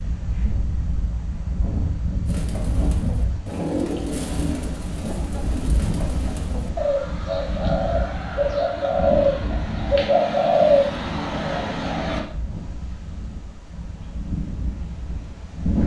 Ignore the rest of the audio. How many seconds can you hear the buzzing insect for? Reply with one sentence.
The buzzing insect can't be heard in this clip.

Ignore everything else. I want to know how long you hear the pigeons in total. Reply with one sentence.
You can hear the pigeons for 10 seconds altogether.